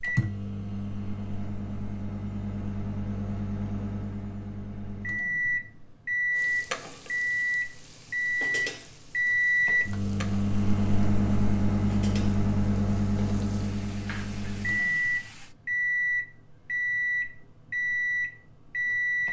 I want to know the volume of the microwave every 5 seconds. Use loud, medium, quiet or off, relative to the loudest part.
medium, loud, loud, loud.